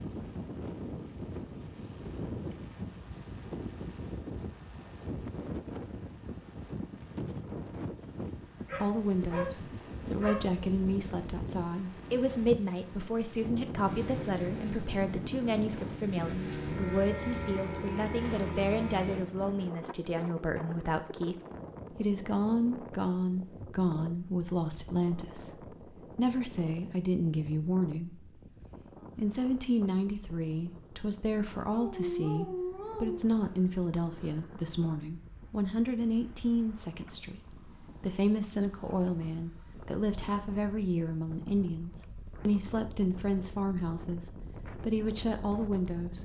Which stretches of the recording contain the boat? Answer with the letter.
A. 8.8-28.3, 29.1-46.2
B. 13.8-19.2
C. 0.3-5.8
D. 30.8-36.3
B.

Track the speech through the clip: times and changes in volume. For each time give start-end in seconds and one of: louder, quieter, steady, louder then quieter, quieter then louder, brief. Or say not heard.
8.8-28.3 steady
29.1-46.2 steady.